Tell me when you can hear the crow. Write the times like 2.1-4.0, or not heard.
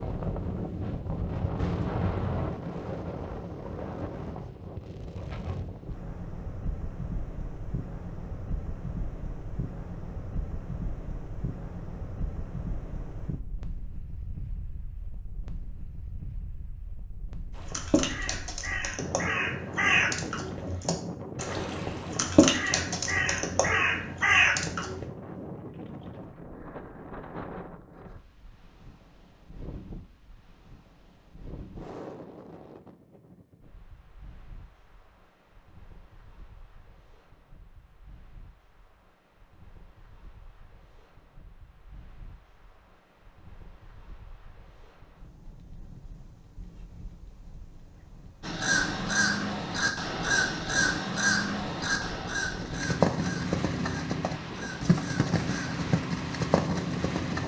17.6-25.1, 48.4-55.8.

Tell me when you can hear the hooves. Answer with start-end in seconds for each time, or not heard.
52.5-57.4.